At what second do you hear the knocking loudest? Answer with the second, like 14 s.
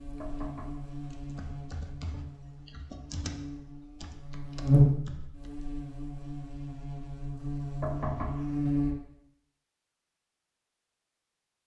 8 s.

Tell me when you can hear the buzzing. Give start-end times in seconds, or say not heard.
0.0-8.9.